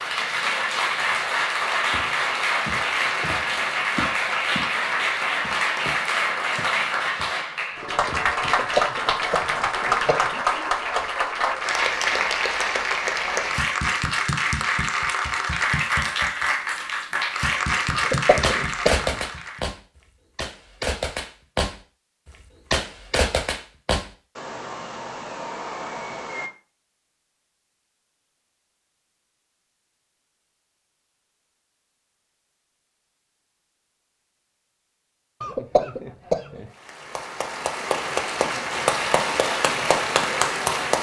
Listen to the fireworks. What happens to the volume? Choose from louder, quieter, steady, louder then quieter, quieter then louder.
quieter.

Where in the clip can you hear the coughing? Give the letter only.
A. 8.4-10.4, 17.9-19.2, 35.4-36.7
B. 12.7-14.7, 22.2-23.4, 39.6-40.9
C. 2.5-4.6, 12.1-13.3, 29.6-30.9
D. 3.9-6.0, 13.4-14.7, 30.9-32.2
A.